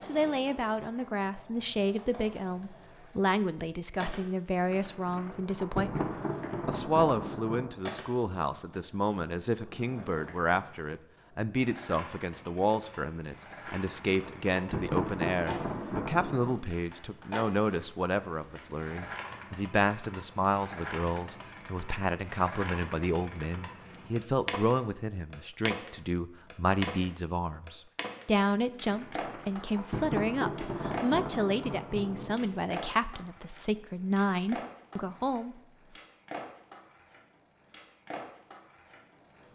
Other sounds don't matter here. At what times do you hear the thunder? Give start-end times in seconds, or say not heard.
4.7-7.8, 13.7-16.6, 28.9-32.6.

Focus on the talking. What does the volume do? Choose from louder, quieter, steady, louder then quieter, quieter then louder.
steady.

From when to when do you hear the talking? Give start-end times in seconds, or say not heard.
0.1-6.0, 6.7-36.0.